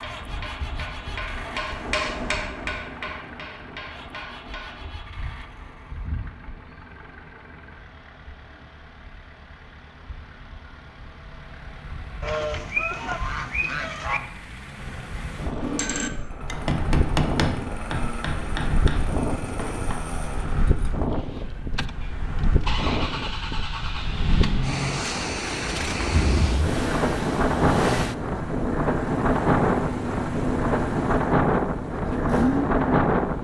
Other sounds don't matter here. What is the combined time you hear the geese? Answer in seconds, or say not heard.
2 s.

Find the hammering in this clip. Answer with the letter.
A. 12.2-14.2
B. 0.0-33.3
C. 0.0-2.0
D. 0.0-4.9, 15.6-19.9
D.